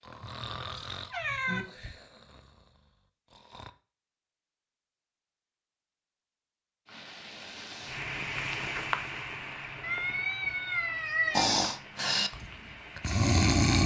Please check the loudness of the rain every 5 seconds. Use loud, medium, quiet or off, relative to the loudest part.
off, loud, medium.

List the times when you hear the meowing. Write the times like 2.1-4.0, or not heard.
0.2-1.6, 9.8-11.6.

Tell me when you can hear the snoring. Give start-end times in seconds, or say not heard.
0.0-3.7, 11.3-13.8.